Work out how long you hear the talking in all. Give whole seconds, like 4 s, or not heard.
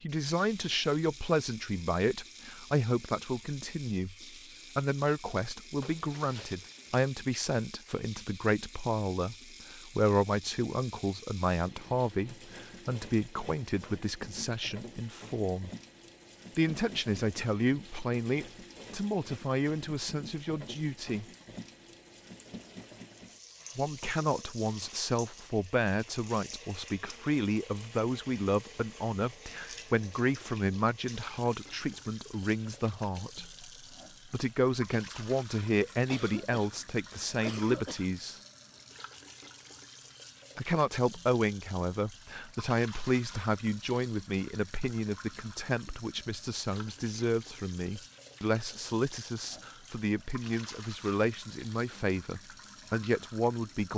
48 s.